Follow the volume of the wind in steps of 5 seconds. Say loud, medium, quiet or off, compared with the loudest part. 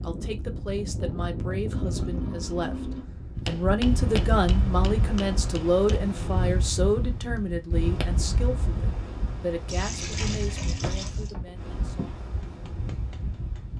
loud, loud, medium.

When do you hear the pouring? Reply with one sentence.
The pouring can be heard from 1.7 to 3.0 s and from 9.7 to 11.3 s.